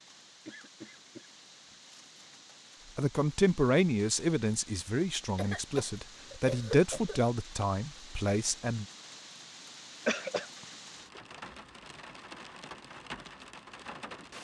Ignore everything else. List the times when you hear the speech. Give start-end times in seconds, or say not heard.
3.0-8.8.